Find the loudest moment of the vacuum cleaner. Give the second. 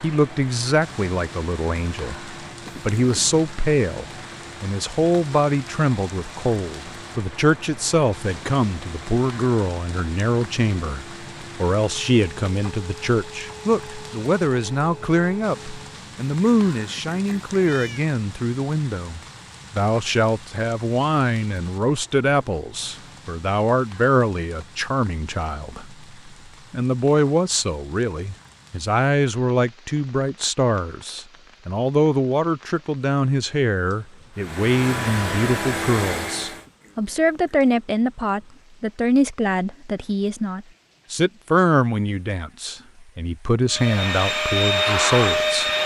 45 s.